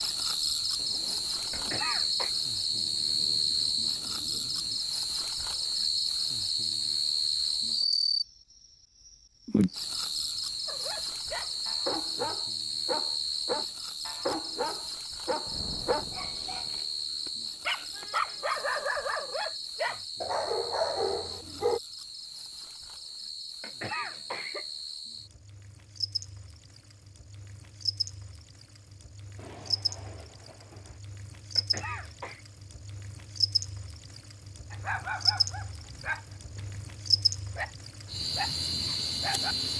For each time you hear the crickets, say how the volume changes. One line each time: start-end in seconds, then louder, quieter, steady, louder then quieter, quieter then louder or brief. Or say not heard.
0.0-39.7 quieter then louder.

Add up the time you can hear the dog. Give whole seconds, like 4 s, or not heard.
16 s.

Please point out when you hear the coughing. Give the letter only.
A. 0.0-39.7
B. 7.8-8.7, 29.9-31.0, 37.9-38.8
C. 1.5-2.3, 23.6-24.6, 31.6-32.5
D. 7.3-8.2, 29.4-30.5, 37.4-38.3
C.